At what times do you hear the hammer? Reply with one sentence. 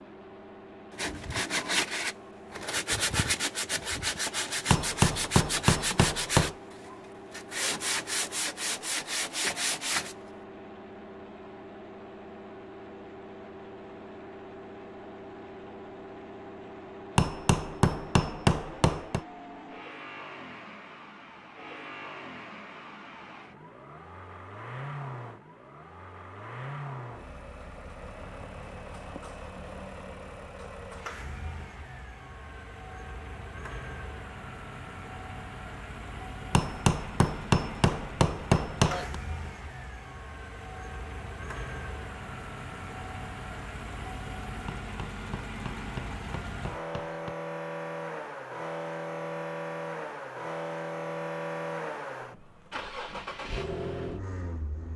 The hammer can be heard from 4.7 to 6.5 s, from 17.1 to 19.2 s, from 36.5 to 39.2 s and from 44.6 to 47.4 s.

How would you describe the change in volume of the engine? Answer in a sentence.
The loudness of the engine goes up.